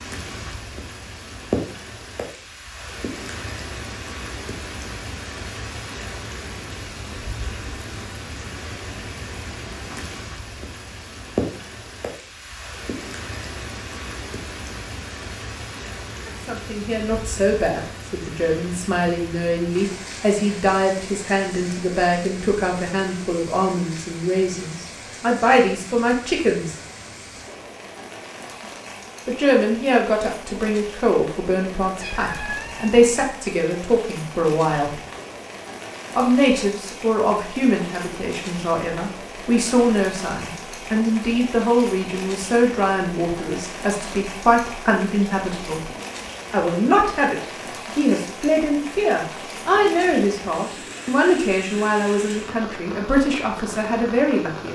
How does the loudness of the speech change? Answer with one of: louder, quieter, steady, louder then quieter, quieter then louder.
steady.